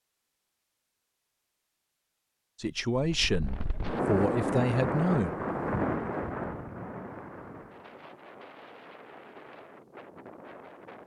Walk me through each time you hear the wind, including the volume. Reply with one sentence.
You can hear the wind from 3.0 to 11.0 s, getting quieter.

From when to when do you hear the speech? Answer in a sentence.
The speech can be heard from 2.6 to 5.3 s.